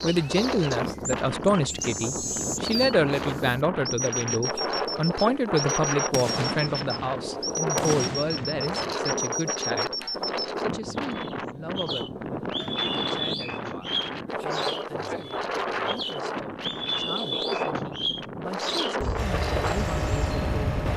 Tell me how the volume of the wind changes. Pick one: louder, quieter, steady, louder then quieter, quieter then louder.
steady.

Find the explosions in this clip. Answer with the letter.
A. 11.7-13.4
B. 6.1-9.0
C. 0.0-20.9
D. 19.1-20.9
B.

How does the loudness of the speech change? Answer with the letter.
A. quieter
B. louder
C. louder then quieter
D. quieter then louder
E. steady
A.